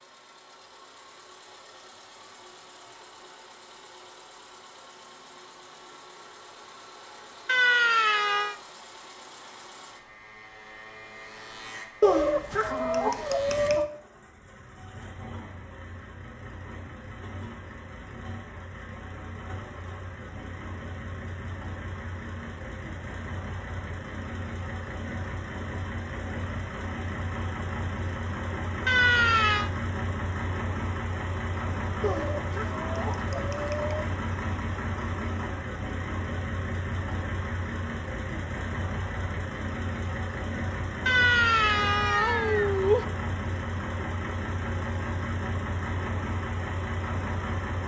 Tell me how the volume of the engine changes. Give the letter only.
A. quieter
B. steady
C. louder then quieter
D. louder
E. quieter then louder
D.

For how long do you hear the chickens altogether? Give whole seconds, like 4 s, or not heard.
4 s.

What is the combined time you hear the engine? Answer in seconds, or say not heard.
48 s.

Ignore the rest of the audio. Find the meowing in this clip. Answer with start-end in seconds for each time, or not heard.
7.5-8.6, 28.9-29.7, 41.0-43.0.